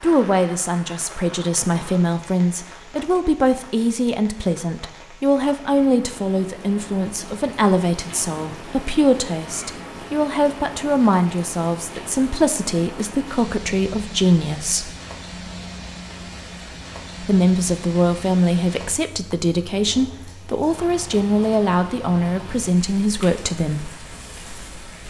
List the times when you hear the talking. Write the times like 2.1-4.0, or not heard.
0.0-14.9, 17.2-23.9.